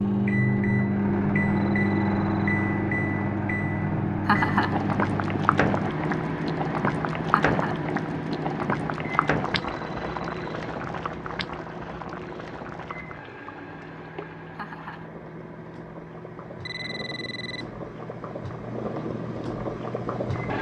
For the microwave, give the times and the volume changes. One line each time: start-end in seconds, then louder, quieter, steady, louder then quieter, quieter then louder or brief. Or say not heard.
0.0-20.5 quieter.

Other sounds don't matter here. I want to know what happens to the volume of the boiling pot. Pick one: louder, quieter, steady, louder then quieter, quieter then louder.
quieter then louder.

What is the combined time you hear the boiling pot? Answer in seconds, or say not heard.
16 s.